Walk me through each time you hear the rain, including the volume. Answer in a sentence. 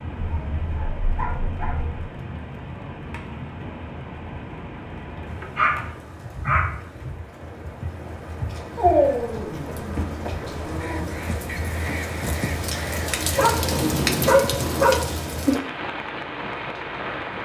You can hear the rain from 0.0 to 17.4 s, getting louder.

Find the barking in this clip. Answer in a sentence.
The barking can be heard from 0.1 to 2.0 s, from 5.3 to 6.8 s, from 8.8 to 11.1 s and from 13.3 to 15.1 s.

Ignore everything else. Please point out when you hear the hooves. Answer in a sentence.
The hooves can't be heard in this clip.